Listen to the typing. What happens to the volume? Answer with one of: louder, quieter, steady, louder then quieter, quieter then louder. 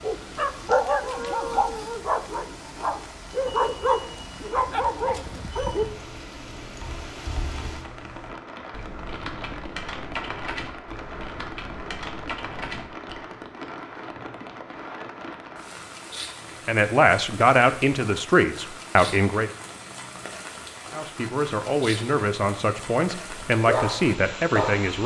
louder.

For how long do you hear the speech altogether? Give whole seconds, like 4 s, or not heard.
7 s.